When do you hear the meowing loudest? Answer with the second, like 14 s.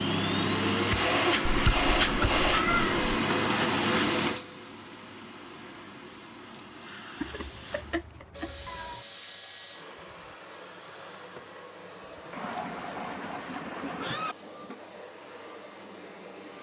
3 s.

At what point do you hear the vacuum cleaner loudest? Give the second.
2 s.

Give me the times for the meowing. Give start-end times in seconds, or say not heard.
1.4-3.0, 7.2-9.0, 12.3-14.3.